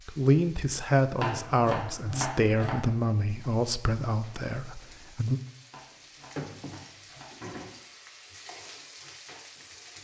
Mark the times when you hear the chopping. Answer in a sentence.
The chopping can be heard from 1.2 to 2.8 s and from 5.7 to 7.5 s.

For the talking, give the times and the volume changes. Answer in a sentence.
The talking can be heard from 0.1 to 5.4 s, getting quieter.